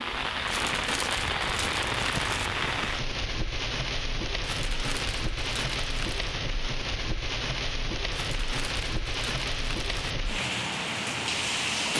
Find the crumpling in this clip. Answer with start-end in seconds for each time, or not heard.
0.5-2.5, 4.4-6.2, 8.1-10.2.